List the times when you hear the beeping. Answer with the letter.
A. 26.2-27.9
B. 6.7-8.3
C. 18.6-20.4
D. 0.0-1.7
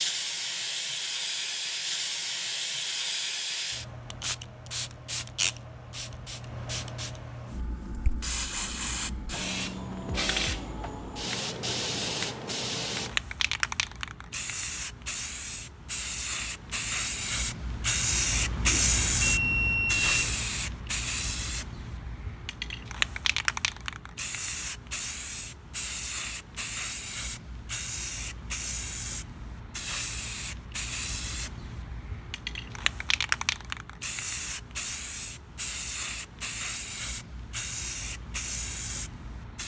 C.